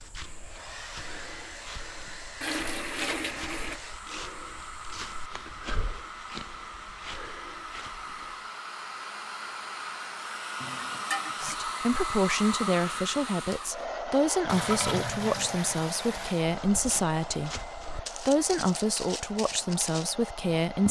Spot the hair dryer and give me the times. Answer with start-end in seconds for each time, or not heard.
0.0-20.8.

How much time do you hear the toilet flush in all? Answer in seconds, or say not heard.
4 s.